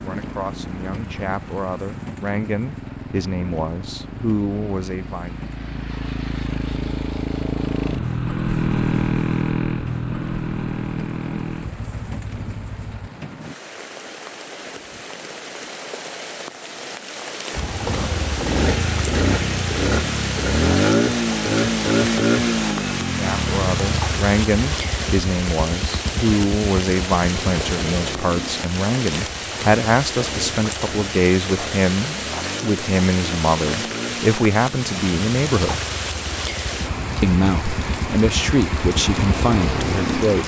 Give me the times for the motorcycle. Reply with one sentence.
You can hear the motorcycle from 0.1 to 13.1 s and from 17.5 to 40.4 s.